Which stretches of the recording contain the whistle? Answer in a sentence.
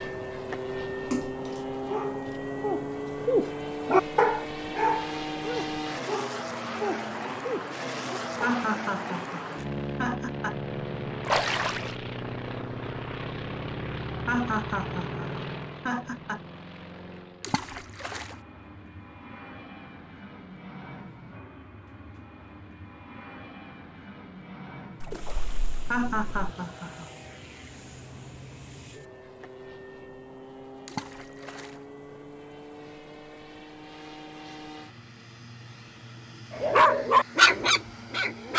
The whistle can't be heard in this clip.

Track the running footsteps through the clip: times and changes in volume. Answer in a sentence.
The running footsteps can't be heard in this clip.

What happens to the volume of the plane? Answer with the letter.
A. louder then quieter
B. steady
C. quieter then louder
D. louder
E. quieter
E.